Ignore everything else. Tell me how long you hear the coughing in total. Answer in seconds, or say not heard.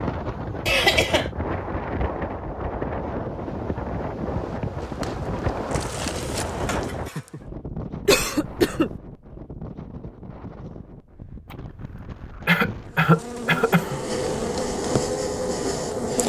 4 s.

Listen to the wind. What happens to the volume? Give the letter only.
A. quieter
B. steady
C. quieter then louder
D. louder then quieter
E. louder
A.